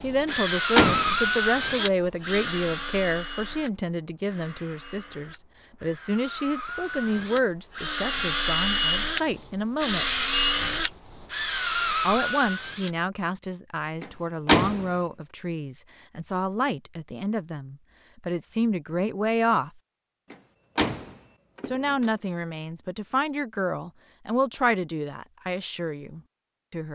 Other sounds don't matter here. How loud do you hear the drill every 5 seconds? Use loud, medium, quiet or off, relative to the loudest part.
loud, loud, loud, off, off, off.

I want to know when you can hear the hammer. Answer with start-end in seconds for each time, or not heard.
not heard.